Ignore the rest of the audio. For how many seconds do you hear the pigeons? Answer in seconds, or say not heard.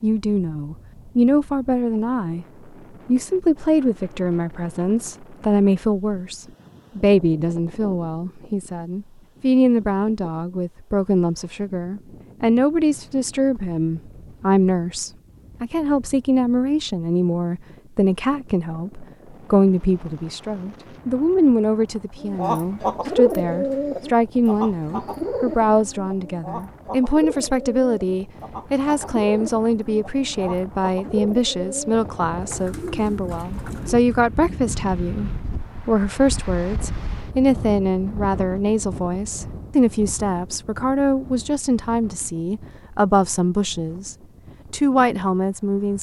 12 s.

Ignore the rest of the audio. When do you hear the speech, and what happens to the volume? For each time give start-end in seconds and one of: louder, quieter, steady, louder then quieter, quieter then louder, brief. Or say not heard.
0.0-2.5 brief
3.0-45.9 steady.